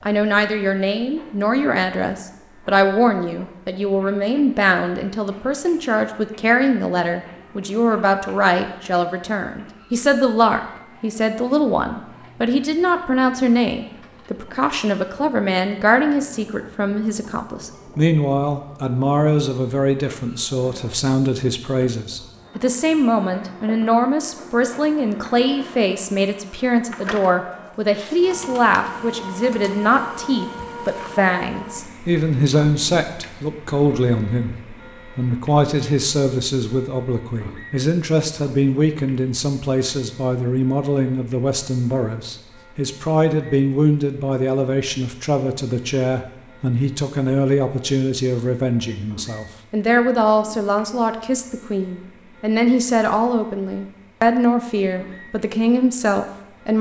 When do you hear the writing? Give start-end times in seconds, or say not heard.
not heard.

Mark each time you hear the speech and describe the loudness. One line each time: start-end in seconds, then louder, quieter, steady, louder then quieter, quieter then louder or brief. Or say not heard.
0.1-56.7 steady.